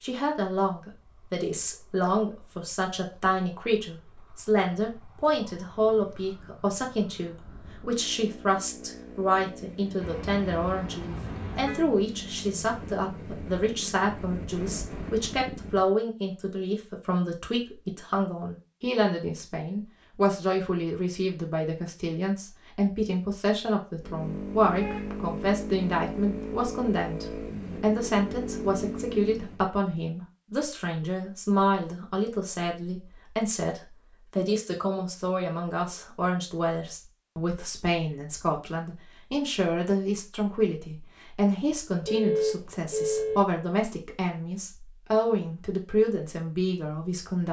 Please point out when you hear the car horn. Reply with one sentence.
The car horn can be heard from 10.0 to 11.8 s, from 24.8 to 25.4 s and from 42.0 to 43.4 s.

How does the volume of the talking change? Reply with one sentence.
The volume of the talking stays about the same.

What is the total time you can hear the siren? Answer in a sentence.
The siren can't be heard in this clip.